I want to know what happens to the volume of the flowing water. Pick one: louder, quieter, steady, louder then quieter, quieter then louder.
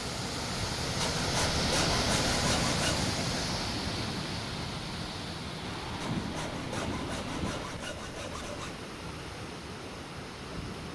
quieter.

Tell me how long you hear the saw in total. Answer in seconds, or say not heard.
5 s.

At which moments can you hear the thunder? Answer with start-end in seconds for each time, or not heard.
5.6-7.7.